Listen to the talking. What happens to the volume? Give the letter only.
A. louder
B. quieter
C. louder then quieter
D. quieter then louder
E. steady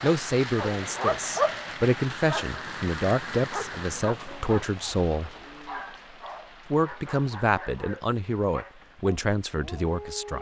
E.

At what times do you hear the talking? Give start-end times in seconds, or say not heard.
0.0-5.3, 6.7-10.3.